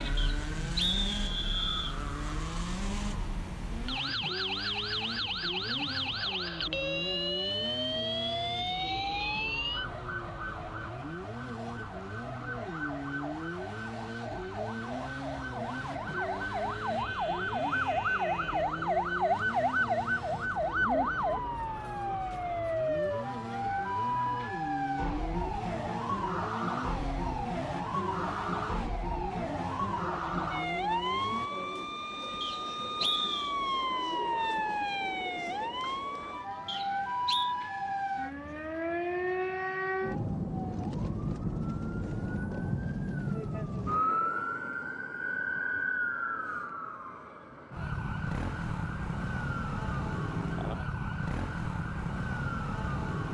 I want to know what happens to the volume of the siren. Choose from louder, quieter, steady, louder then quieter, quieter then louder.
steady.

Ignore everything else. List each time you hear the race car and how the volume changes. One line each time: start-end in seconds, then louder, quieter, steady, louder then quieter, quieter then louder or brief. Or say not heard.
0.0-31.5 steady.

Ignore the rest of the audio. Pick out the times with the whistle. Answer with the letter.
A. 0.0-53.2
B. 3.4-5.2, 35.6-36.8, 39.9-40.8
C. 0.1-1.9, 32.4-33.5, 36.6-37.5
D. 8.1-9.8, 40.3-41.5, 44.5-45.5
C.